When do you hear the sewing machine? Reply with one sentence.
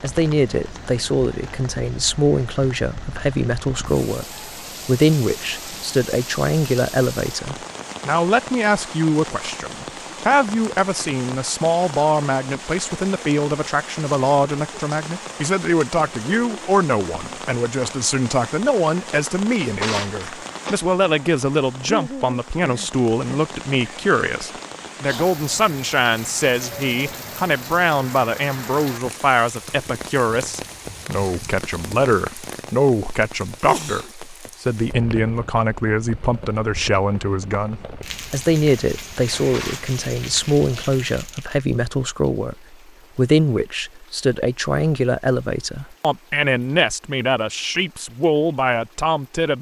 The sewing machine can't be heard in this clip.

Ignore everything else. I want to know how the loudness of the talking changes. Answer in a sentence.
The volume of the talking stays about the same.